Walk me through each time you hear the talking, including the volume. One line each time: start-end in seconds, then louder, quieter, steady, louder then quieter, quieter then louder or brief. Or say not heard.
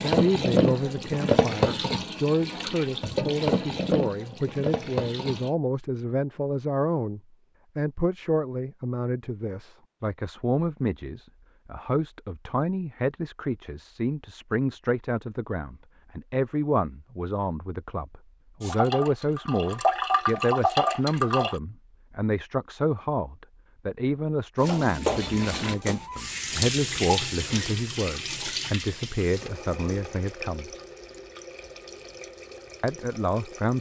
0.0-30.7 steady
32.8-33.7 brief.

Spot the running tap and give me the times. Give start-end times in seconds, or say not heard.
0.0-5.5, 18.6-21.6, 24.6-33.7.